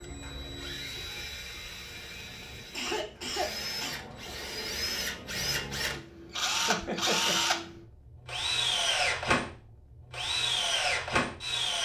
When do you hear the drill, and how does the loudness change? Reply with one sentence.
The drill can be heard from 0.0 to 11.8 s, getting louder.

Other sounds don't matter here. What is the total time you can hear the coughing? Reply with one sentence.
The coughing can be heard for 3 seconds in total.